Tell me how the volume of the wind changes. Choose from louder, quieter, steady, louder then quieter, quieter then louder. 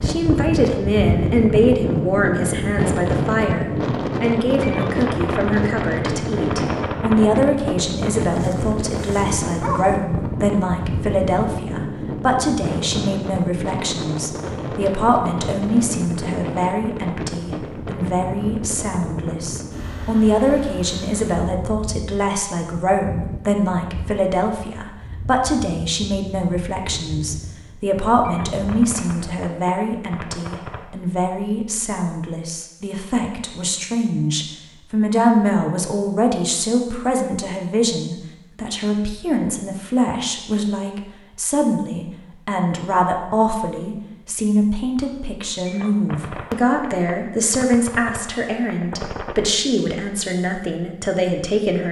quieter.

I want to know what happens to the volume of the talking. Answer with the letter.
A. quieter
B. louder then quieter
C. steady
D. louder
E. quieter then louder
C.